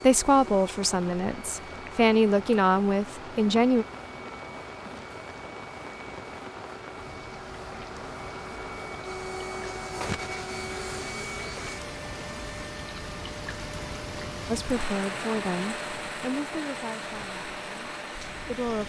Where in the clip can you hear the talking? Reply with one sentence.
The talking can be heard from 0.0 to 3.9 s and from 14.5 to 18.8 s.